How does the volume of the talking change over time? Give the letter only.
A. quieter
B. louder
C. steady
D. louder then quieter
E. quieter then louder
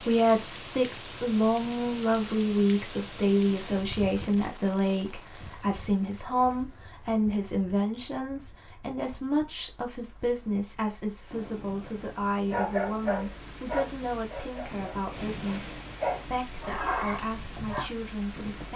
A.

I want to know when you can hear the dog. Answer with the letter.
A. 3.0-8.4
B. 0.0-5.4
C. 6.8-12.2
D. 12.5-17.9
D.